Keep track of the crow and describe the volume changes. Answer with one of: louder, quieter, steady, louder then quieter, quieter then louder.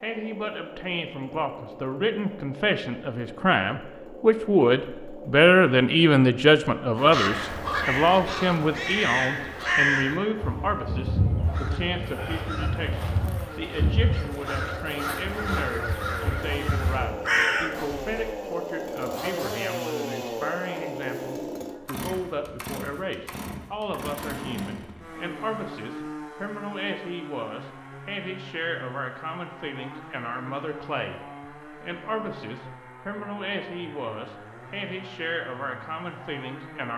quieter then louder.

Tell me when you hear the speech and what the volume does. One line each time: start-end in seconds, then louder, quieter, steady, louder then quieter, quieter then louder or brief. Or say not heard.
0.0-36.9 quieter.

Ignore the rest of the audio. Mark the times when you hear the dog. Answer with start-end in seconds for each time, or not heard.
not heard.